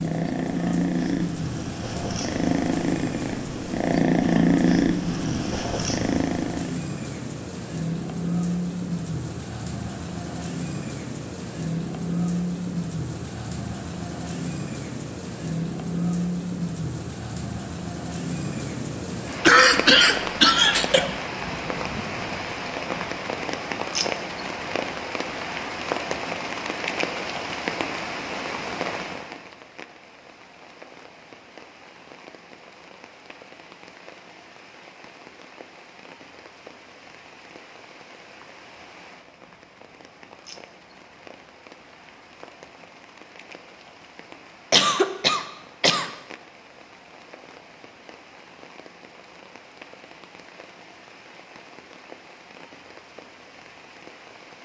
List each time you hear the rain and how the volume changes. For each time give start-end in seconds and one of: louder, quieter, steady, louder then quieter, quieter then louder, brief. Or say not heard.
0.0-54.6 quieter.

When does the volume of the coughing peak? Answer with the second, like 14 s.
20 s.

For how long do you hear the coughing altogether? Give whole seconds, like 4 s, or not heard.
3 s.